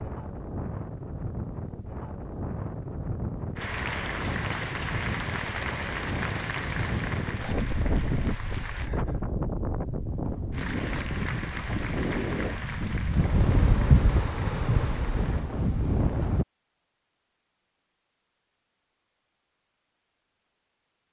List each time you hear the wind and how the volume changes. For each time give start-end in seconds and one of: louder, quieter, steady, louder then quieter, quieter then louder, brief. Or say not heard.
0.0-16.4 louder.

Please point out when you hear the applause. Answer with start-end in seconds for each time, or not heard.
3.5-8.9, 10.5-15.5.